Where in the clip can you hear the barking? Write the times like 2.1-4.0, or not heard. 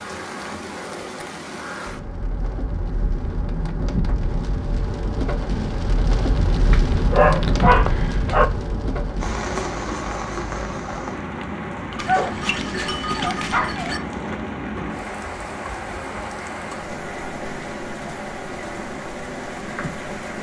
6.7-8.4, 11.9-14.0.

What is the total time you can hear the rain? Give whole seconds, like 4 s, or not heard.
20 s.